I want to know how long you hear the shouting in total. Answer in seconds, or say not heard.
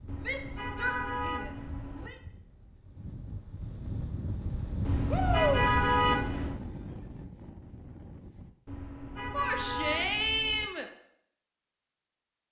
4 s.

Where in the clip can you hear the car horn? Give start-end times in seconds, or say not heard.
0.1-2.1, 4.8-6.6, 8.7-10.7.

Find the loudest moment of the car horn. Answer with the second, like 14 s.
6 s.